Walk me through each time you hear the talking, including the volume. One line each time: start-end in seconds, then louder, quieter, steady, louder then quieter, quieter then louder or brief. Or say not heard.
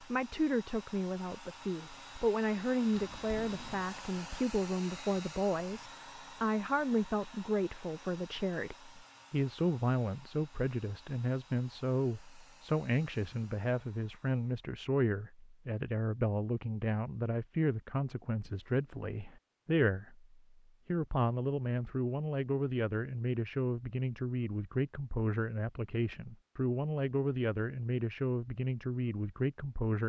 0.0-30.0 steady.